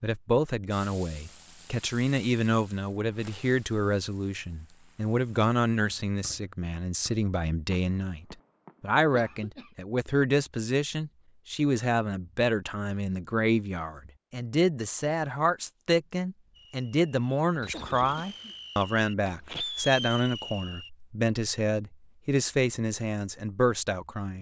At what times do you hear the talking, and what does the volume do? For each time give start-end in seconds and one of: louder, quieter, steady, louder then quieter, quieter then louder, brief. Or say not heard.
0.0-24.3 steady.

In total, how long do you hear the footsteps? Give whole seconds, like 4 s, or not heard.
not heard.